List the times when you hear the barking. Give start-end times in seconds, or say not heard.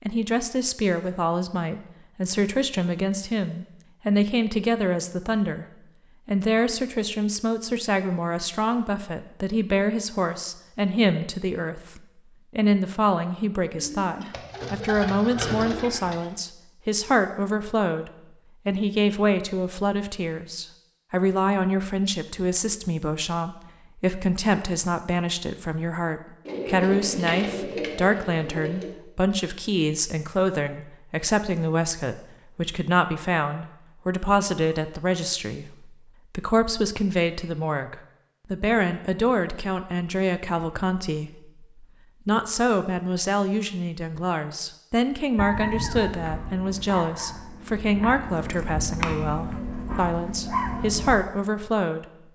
45.4-51.1.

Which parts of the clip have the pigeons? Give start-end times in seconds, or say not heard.
13.7-16.3, 26.4-28.9.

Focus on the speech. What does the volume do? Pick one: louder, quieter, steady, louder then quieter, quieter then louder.
steady.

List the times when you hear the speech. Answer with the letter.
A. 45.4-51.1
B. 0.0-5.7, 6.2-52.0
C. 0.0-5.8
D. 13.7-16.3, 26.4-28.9
B.